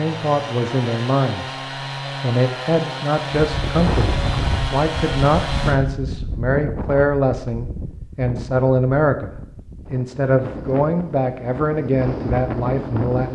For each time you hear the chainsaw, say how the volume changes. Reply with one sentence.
You can hear the chainsaw from 0.0 to 5.8 s, at a steady volume.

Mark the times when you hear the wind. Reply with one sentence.
You can hear the wind from 3.4 to 13.3 s.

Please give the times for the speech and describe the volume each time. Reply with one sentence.
You can hear the speech briefly from 0.0 to 1.6 s; and from 2.2 to 13.3 s, at a steady volume.